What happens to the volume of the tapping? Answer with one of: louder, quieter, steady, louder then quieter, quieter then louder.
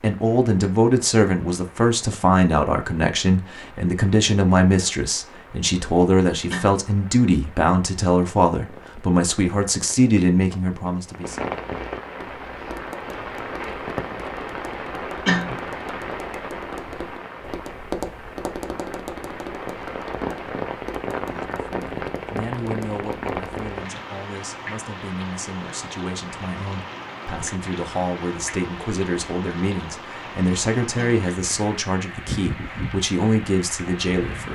louder then quieter.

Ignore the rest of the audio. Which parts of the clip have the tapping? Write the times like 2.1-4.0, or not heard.
12.2-23.6.